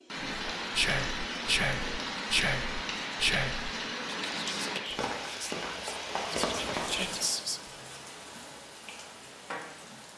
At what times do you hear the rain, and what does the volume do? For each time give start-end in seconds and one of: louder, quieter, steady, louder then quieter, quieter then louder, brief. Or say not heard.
0.0-10.1 quieter.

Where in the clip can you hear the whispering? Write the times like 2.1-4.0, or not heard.
0.1-7.6.